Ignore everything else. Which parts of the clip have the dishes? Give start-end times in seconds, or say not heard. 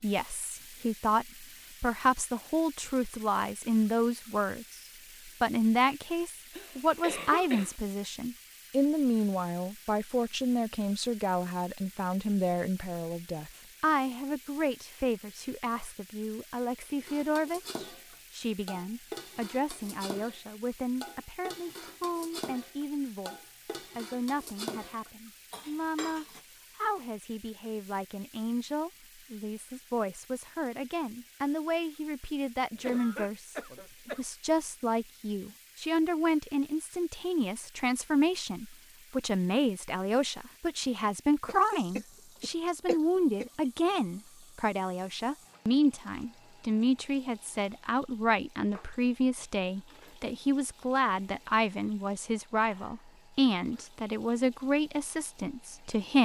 17.0-26.4.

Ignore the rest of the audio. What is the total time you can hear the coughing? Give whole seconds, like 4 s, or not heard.
5 s.